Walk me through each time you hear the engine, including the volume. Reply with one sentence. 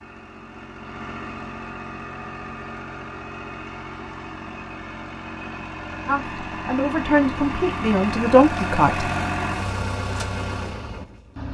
You can hear the engine from 0.0 to 11.4 s, getting louder.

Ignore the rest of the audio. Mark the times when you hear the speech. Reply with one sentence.
You can hear the speech from 6.0 to 9.1 s.